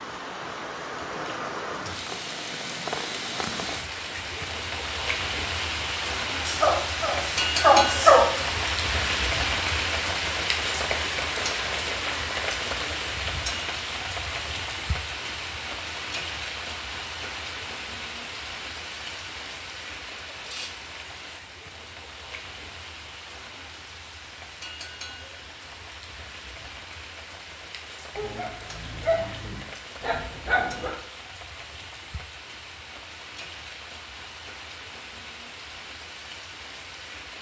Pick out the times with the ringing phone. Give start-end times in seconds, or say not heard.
not heard.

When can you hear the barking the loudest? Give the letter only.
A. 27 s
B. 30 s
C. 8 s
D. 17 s
C.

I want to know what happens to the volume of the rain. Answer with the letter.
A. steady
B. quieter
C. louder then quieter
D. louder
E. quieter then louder
B.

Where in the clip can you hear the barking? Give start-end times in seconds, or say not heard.
6.5-8.3, 28.1-30.9.